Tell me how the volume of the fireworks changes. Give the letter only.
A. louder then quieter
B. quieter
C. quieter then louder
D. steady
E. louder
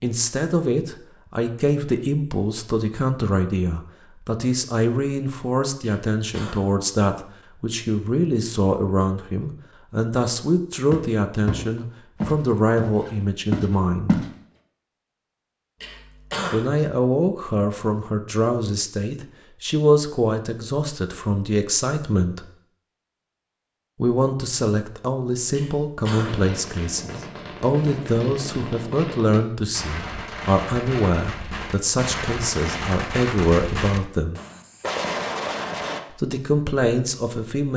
E.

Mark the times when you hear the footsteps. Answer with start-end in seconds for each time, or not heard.
10.9-14.3.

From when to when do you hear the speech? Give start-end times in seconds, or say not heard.
0.0-14.2, 16.5-22.4, 24.0-34.4, 36.1-37.7.